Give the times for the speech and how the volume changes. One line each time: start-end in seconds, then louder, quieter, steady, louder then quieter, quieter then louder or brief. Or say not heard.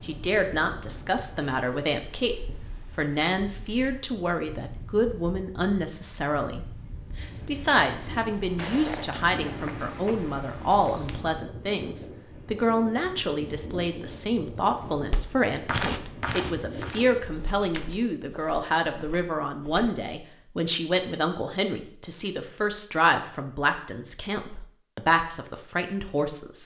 0.0-26.6 steady.